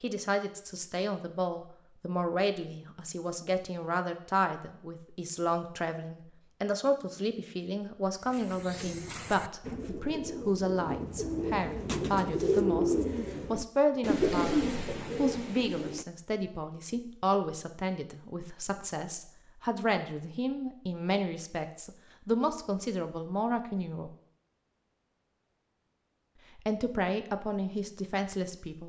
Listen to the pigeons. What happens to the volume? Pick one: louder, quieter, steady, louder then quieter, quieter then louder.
louder.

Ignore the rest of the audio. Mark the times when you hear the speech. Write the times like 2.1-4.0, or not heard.
0.0-24.1, 26.6-28.8.